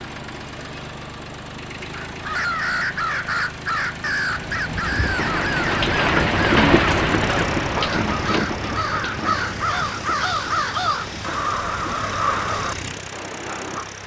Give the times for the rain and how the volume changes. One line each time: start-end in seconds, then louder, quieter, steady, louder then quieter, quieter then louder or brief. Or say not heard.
4.3-14.0 quieter.